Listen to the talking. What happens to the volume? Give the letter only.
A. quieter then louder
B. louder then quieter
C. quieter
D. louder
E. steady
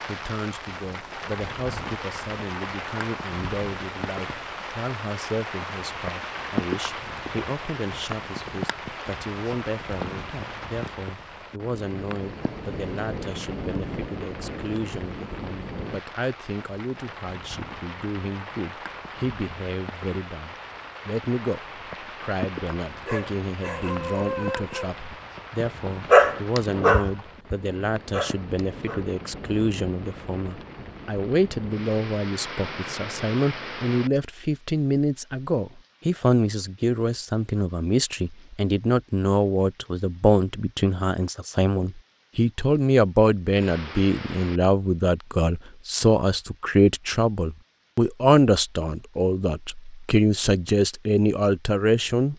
D.